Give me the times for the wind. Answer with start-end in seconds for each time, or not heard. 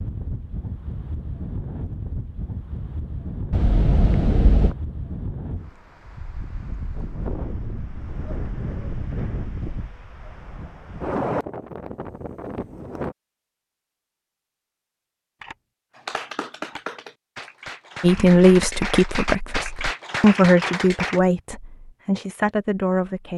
0.0-13.2.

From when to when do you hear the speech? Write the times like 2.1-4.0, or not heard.
18.0-23.3.